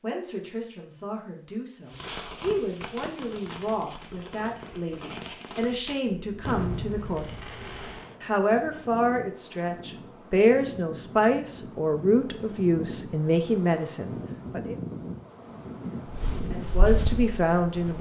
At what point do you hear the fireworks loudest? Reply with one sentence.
The volume of the fireworks peaks at 7 seconds.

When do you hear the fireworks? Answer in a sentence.
You can hear the fireworks from 1.9 to 8.2 s.